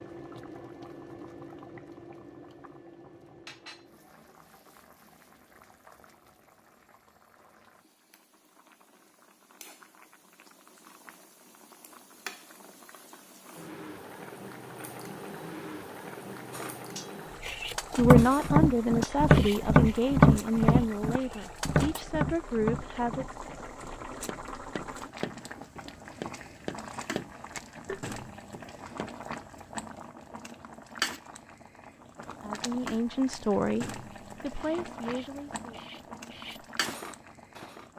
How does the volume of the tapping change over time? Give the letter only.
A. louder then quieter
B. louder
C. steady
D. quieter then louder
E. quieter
E.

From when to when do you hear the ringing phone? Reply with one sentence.
The ringing phone can't be heard in this clip.